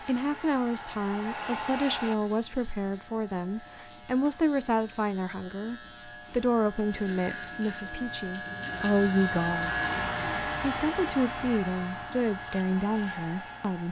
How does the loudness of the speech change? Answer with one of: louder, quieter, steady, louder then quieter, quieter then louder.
steady.